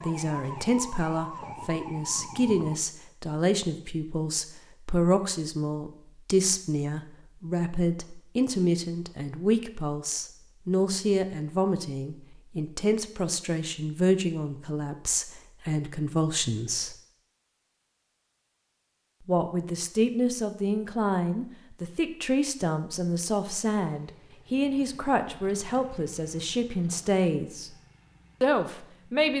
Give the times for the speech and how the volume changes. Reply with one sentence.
You can hear the speech from 0.0 to 16.9 s, at a steady volume; from 19.2 to 27.7 s, at a steady volume; and briefly from 28.4 to 29.3 s.